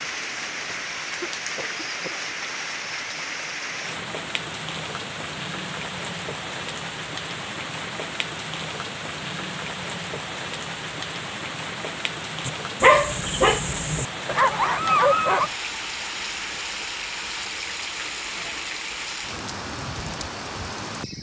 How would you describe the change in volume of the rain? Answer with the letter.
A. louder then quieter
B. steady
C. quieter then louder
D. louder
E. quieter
B.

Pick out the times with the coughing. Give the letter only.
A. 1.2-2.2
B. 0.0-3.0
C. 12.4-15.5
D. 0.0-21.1
A.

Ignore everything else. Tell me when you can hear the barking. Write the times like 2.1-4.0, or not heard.
12.4-15.5.